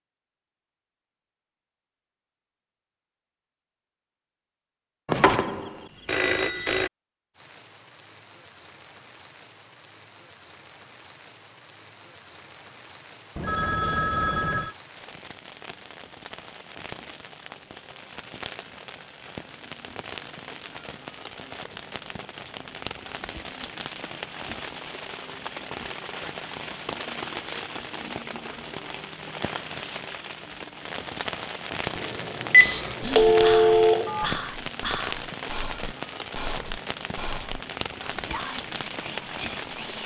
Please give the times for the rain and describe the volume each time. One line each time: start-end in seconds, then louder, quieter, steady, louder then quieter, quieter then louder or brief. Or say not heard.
7.3-40.0 louder.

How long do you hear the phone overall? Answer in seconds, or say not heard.
6 s.